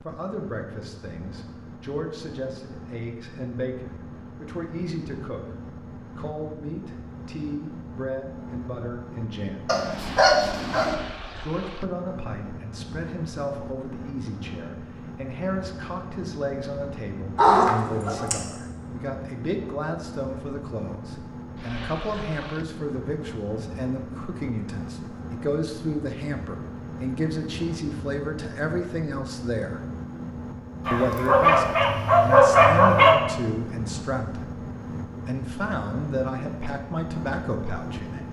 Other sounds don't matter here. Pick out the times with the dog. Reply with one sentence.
You can hear the dog from 9.7 to 10.9 s, from 17.4 to 18.4 s and from 30.9 to 33.2 s.